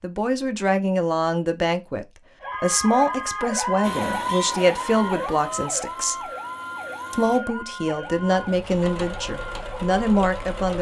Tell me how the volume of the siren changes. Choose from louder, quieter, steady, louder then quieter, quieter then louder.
quieter.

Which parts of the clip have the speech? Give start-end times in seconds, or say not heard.
0.0-6.3, 7.1-10.7.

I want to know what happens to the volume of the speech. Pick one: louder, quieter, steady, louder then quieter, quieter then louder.
steady.